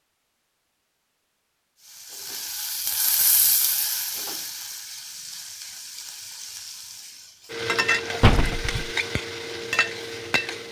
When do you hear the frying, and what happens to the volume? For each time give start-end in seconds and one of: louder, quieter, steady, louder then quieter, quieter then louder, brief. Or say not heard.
1.8-10.6 quieter then louder.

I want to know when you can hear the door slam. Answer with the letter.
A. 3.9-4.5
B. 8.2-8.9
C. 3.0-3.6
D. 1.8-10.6
B.